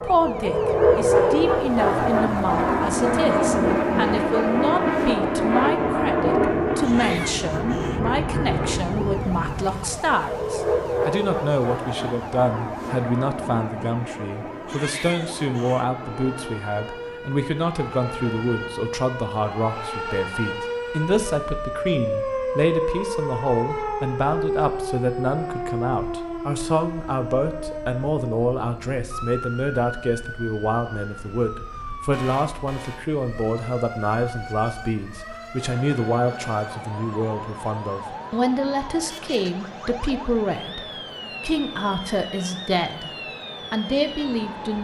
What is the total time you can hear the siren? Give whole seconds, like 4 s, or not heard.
45 s.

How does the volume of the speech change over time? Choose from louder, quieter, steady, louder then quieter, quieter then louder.
steady.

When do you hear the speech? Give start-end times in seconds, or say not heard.
0.0-44.7.